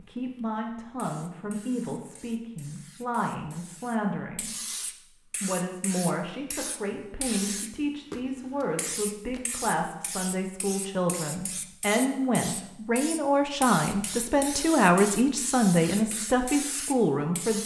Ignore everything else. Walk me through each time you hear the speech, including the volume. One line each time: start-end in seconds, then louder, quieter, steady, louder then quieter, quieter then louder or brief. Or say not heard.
0.0-17.6 louder.